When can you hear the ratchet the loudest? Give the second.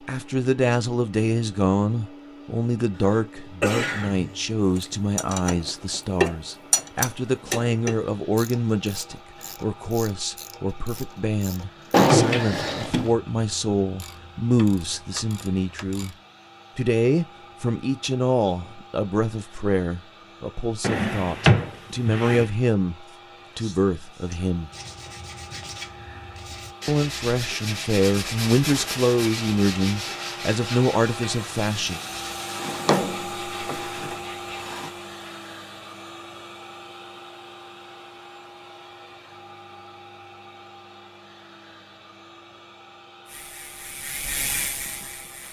6 s.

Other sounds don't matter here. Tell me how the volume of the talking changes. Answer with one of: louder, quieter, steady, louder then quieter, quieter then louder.
steady.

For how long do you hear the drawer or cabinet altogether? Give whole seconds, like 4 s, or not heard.
5 s.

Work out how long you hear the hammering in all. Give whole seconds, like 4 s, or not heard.
not heard.